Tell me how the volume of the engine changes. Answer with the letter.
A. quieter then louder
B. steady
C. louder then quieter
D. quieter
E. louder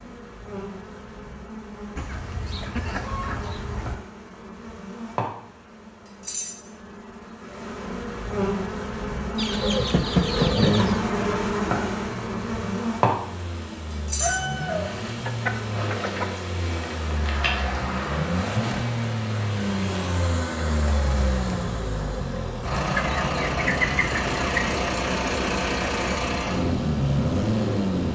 E.